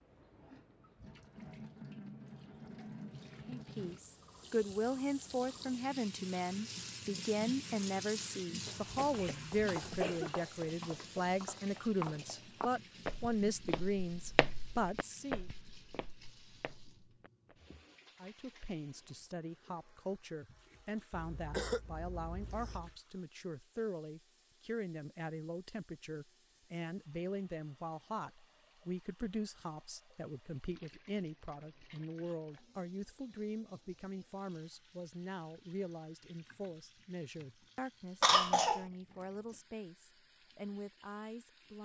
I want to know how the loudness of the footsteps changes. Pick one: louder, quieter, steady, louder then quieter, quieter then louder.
louder then quieter.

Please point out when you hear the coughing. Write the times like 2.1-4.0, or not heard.
8.8-10.3, 21.1-22.9, 38.2-38.9.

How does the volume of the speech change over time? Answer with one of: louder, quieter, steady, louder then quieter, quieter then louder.
quieter.